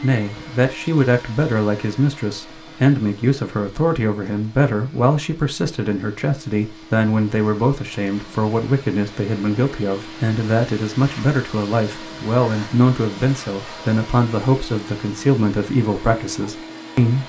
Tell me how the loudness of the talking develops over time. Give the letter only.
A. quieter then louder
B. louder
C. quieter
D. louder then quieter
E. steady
E.